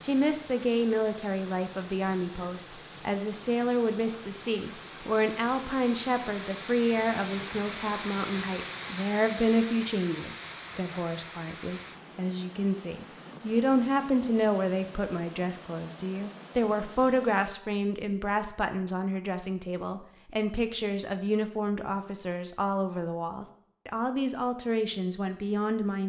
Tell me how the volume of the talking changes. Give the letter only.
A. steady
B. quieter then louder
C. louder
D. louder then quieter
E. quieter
A.